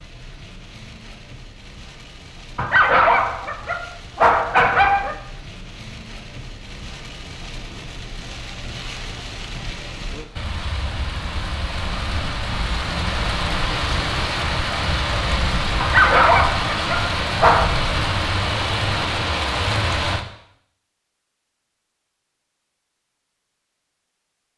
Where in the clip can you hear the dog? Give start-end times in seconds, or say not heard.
2.5-5.2, 15.8-17.7.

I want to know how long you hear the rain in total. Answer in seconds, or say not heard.
20 s.